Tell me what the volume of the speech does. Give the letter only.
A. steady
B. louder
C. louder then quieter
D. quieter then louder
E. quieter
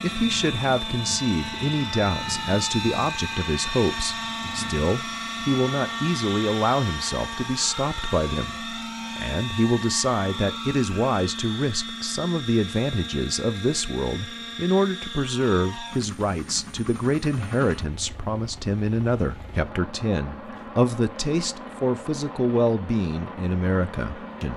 A.